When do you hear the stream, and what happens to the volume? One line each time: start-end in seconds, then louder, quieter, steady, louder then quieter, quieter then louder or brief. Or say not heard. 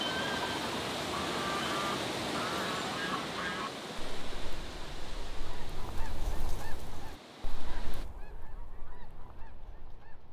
0.0-8.1 quieter.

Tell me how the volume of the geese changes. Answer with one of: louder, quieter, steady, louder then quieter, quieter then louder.
quieter.